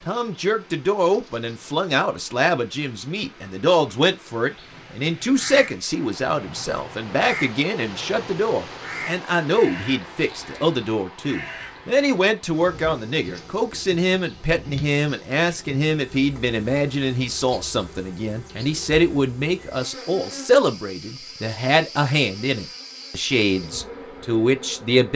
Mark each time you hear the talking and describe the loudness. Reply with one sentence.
The talking can be heard from 0.1 to 25.1 s, at a steady volume.